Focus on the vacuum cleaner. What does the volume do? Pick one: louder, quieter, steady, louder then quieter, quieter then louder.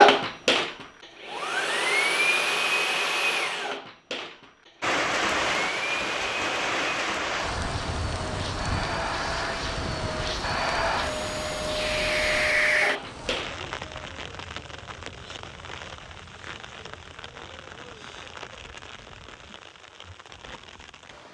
quieter then louder.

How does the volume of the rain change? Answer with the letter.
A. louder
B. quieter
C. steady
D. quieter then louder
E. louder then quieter
B.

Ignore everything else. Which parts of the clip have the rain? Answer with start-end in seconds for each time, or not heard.
4.8-21.2.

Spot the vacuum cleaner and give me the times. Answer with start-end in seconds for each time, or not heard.
0.0-13.6.